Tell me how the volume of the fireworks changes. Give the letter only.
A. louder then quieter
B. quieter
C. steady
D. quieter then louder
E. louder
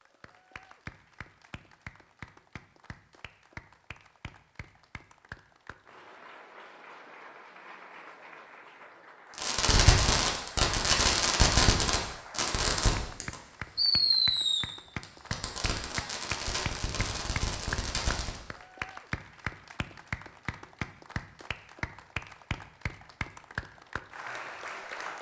B.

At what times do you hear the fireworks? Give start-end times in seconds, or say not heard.
9.3-18.4.